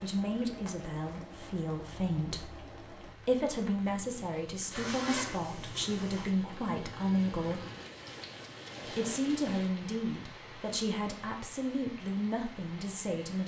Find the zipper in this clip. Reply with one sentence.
The zipper can be heard from 4.7 to 6.3 s.